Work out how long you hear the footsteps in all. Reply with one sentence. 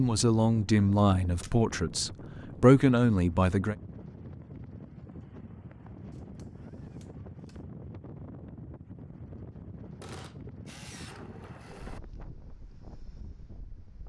You can't hear the footsteps here.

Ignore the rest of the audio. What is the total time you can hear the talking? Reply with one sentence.
You can hear the talking for 4 seconds altogether.